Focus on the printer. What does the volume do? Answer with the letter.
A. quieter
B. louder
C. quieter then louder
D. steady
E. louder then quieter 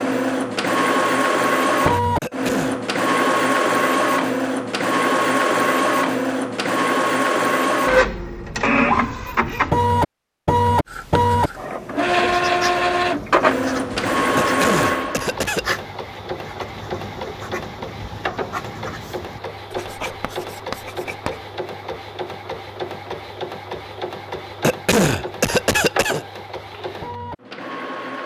A.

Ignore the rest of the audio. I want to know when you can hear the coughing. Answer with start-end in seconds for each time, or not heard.
2.2-2.8, 14.3-15.8, 24.6-26.2.